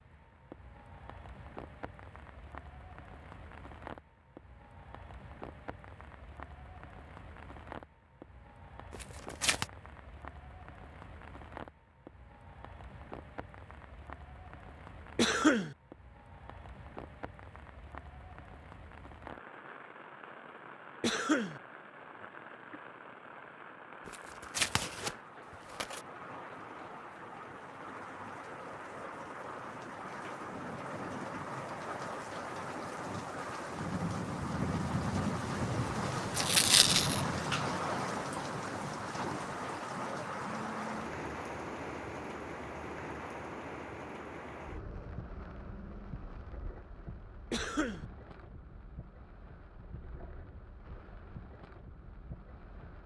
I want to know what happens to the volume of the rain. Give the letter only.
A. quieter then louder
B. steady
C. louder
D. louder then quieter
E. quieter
D.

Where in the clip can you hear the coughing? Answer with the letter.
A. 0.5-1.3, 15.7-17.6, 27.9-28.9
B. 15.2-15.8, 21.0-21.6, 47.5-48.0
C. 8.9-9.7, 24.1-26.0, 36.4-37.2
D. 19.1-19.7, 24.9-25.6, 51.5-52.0
B.